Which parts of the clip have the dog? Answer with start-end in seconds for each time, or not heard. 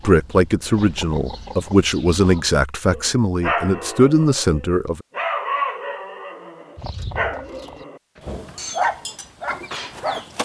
2.9-10.2.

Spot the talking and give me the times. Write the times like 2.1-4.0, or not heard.
0.0-5.0.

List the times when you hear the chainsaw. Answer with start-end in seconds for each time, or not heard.
not heard.